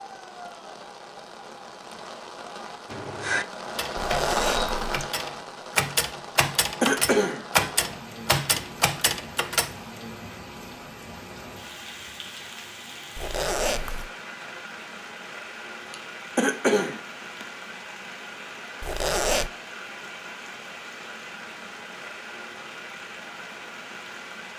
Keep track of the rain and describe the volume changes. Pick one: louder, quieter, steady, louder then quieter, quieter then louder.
quieter.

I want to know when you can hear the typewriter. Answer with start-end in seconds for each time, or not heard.
2.9-9.8.